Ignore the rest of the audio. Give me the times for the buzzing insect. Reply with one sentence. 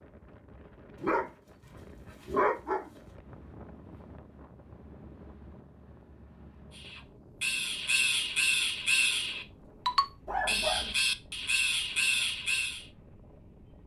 The buzzing insect can't be heard in this clip.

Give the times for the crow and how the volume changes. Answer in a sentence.
The crow can be heard from 6.8 to 12.8 s, at a steady volume.